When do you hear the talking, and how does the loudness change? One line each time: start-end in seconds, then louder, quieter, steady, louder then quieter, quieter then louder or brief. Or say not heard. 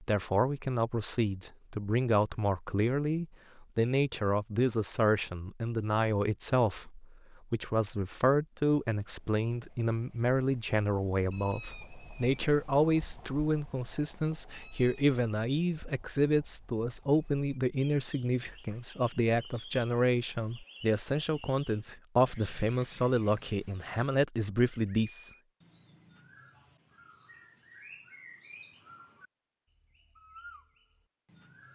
0.0-25.3 steady.